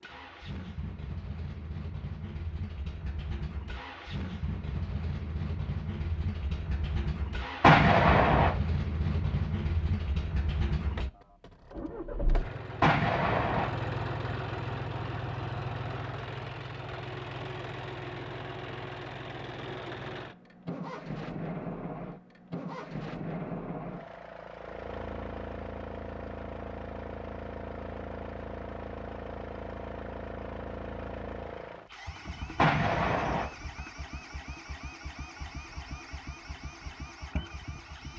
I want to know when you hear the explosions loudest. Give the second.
8 s.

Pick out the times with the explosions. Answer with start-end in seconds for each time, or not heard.
7.6-8.5, 12.8-13.7, 32.5-33.5.